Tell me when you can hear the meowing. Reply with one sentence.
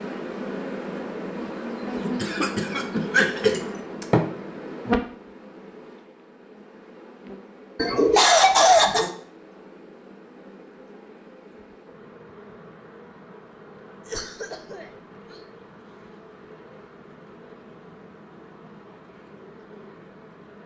You can't hear the meowing here.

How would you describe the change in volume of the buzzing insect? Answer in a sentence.
The volume of the buzzing insect goes down.